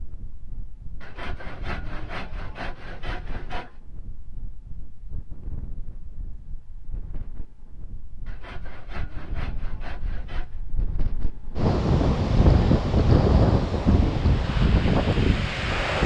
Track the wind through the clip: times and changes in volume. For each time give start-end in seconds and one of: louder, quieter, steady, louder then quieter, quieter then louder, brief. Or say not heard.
0.0-16.0 louder.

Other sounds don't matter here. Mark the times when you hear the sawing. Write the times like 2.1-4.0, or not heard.
1.0-3.8, 8.2-10.6.